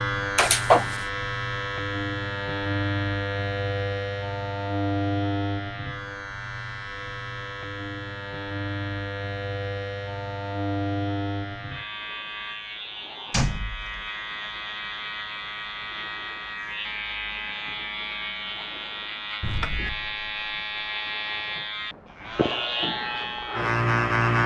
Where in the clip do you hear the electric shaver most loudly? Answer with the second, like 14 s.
24 s.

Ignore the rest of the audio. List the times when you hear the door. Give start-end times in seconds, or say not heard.
0.3-0.9, 13.3-14.1, 19.4-20.1.